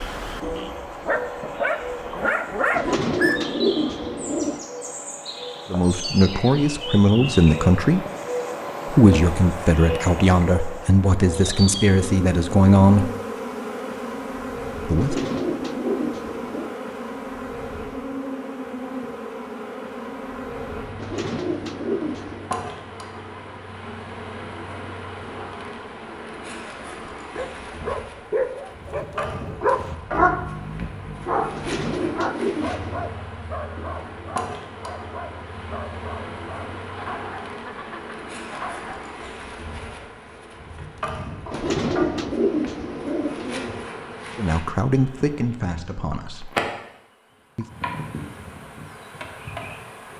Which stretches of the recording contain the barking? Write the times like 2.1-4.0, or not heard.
0.0-3.4, 27.3-39.1.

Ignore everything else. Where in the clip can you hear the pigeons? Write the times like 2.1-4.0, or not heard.
2.7-4.7, 14.9-16.8, 20.9-22.5, 31.5-33.1, 41.5-43.9.